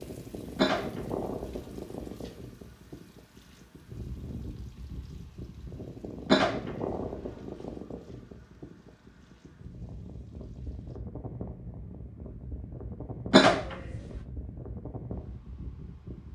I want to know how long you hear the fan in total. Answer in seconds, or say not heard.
16 s.